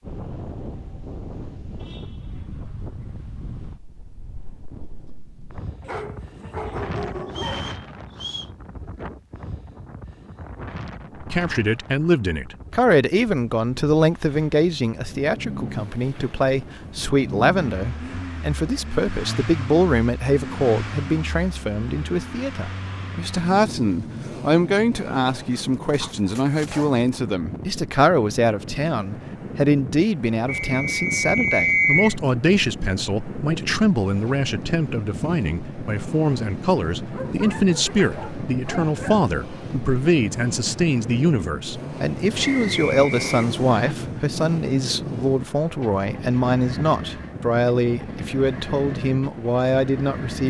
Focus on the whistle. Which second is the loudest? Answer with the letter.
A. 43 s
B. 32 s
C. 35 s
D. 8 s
B.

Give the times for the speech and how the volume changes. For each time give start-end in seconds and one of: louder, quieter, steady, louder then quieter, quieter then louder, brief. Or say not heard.
11.2-50.4 steady.